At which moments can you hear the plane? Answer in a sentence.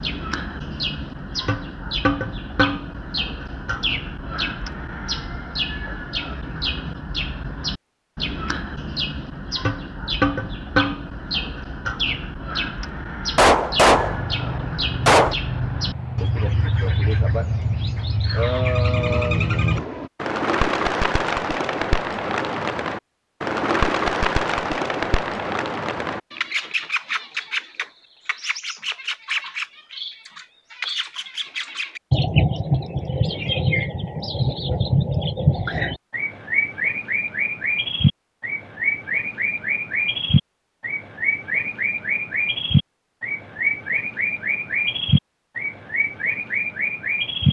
The plane can be heard from 13.9 to 20.1 s.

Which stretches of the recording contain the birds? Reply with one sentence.
The birds can be heard from 0.0 to 47.4 s.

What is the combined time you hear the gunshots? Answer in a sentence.
The gunshots can be heard for 2 seconds in total.